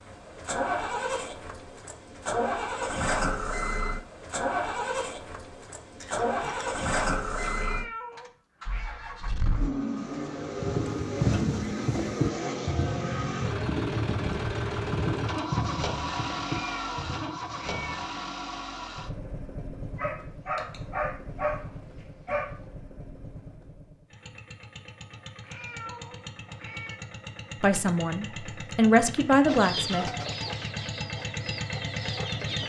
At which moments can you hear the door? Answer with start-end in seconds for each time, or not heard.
not heard.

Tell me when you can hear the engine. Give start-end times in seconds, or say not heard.
0.0-32.6.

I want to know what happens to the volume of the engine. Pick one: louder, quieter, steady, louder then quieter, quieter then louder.
quieter then louder.